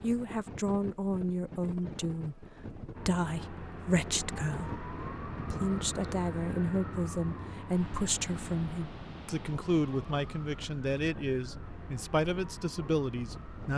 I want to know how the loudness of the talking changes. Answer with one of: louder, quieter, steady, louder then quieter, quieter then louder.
steady.